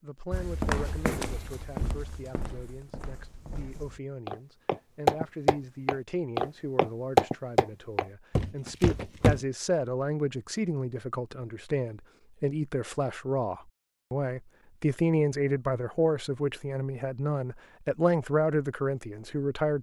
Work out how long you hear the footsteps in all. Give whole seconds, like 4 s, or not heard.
9 s.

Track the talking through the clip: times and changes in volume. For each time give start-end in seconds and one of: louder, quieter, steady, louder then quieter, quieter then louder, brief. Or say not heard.
0.0-19.7 louder.